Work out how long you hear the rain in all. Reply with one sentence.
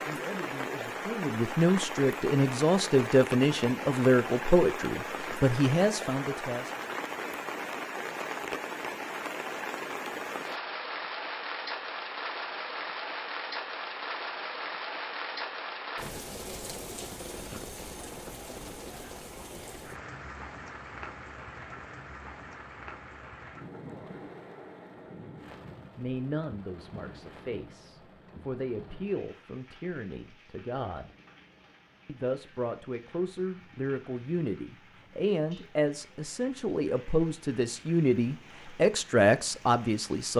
You can hear the rain for 40 seconds altogether.